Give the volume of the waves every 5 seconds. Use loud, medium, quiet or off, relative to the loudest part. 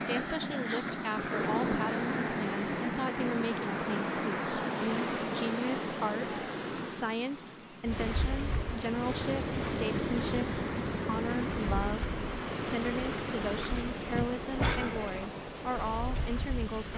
loud, loud, loud, medium.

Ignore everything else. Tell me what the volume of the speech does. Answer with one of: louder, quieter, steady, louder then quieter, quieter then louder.
steady.